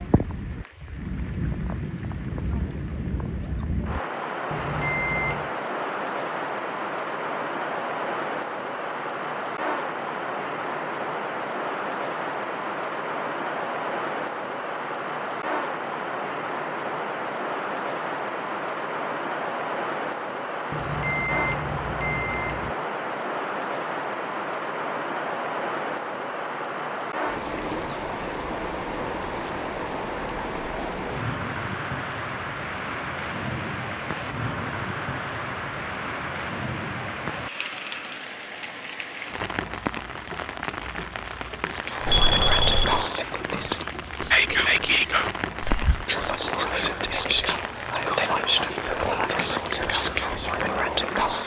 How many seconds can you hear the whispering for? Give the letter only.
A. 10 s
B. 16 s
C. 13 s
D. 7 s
A.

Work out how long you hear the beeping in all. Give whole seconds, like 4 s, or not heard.
4 s.